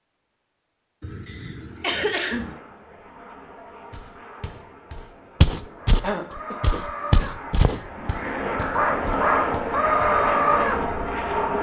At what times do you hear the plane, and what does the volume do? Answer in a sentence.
You can hear the plane from 1.6 to 11.5 s, getting louder.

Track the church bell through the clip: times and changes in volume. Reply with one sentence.
The church bell can't be heard in this clip.